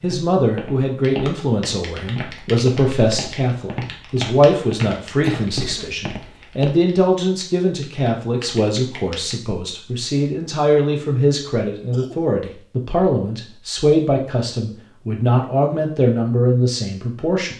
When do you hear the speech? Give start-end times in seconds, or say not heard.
0.0-17.5.